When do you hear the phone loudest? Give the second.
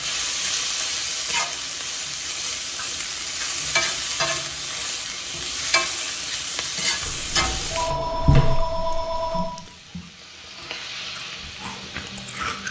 8 s.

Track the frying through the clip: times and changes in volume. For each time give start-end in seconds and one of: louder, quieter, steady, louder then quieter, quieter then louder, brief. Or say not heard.
0.0-12.6 quieter.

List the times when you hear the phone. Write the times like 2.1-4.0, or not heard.
7.0-9.5.